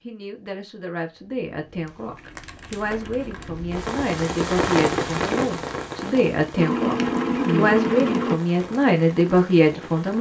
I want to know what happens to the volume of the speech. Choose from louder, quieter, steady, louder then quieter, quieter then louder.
louder.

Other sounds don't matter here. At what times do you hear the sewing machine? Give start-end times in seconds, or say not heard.
6.5-8.4.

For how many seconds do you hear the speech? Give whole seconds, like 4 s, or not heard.
10 s.